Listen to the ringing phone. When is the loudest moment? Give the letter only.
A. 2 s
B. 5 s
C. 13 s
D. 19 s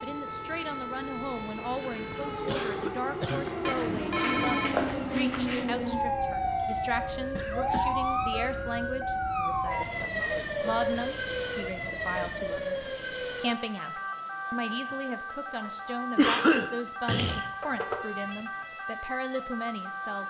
B.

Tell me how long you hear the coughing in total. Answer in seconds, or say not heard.
3 s.